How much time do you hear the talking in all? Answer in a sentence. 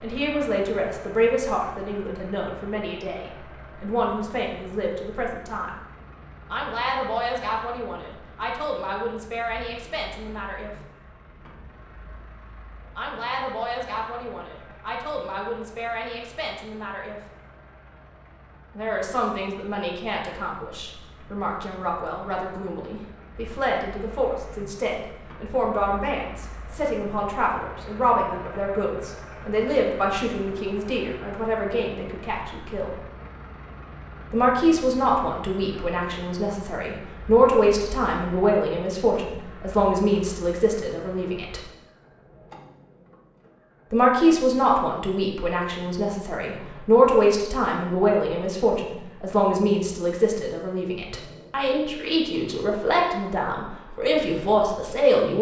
You can hear the talking for 47 seconds altogether.